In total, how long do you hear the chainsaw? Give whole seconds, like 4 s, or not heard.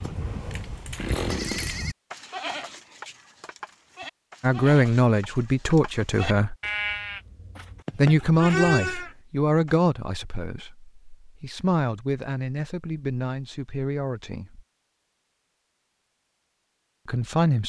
2 s.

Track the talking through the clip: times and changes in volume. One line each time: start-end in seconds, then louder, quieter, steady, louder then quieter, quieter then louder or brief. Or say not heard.
4.4-6.5 brief
8.0-14.7 quieter
17.1-17.6 brief.